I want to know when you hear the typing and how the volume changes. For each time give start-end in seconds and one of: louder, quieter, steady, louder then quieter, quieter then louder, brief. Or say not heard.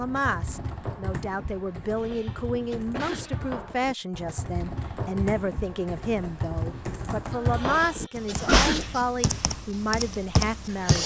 0.0-11.0 louder.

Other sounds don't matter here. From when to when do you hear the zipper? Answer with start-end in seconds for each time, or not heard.
not heard.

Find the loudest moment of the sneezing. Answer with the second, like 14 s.
9 s.